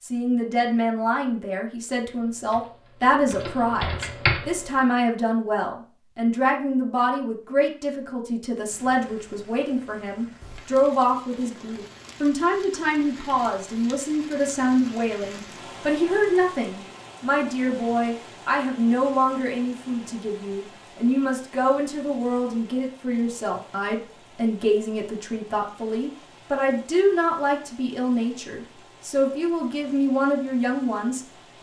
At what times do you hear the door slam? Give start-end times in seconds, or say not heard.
not heard.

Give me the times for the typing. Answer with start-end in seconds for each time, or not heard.
2.0-4.8.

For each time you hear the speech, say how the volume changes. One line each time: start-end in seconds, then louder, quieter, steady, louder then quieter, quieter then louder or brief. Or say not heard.
0.0-31.5 steady.